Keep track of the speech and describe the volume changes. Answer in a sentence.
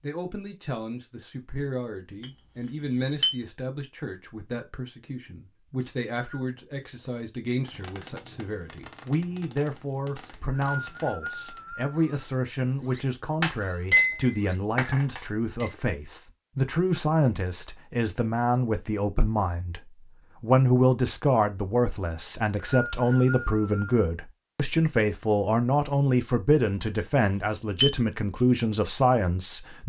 The loudness of the speech goes up.